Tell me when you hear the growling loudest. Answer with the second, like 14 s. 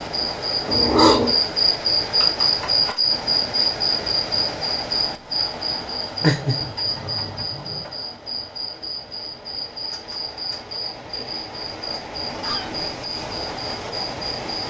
1 s.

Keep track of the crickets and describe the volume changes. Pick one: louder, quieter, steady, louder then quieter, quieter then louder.
quieter.